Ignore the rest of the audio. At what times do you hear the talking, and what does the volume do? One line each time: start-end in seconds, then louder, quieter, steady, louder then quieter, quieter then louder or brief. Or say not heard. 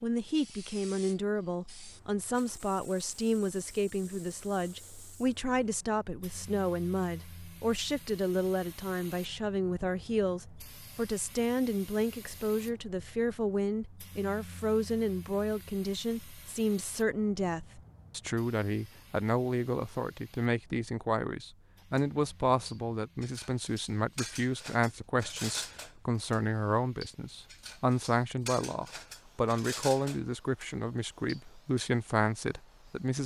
0.0-33.2 steady.